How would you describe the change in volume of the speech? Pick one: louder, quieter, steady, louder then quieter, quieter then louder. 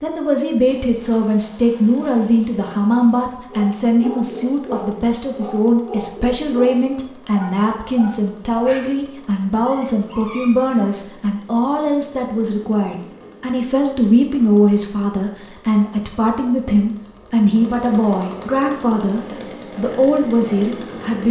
steady.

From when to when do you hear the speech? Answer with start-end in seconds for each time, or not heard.
0.0-21.2.